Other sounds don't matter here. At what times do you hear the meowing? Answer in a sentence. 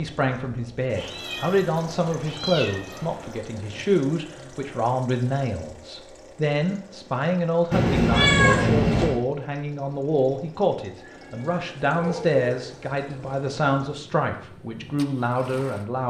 You can hear the meowing from 0.9 to 3.4 s, from 7.7 to 9.2 s and from 11.0 to 12.7 s.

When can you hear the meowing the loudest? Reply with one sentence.
The volume of the meowing peaks at 8 seconds.